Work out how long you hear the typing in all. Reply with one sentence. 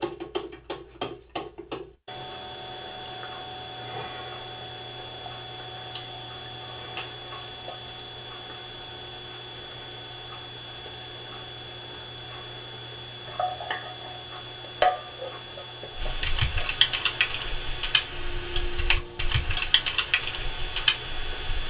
The typing can be heard for 6 seconds in total.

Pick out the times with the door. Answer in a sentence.
The door can't be heard in this clip.